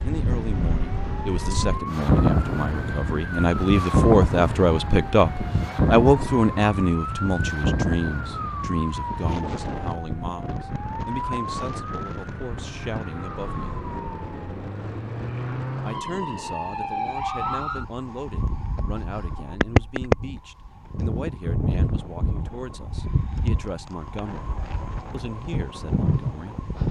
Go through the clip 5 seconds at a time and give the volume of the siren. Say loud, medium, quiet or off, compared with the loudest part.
medium, medium, medium, loud, loud, loud.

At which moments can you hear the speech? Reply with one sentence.
You can hear the speech from 0.0 to 13.8 s and from 15.8 to 26.8 s.